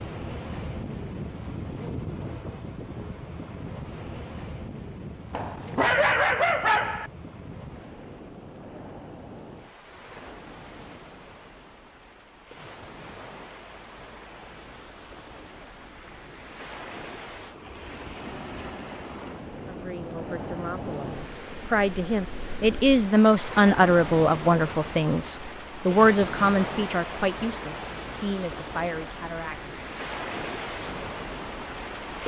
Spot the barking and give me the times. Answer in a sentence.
You can hear the barking from 5.3 to 7.1 s.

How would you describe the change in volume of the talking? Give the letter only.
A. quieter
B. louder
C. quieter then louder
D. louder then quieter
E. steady
D.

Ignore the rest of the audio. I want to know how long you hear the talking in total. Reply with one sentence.
You can hear the talking for 10 seconds altogether.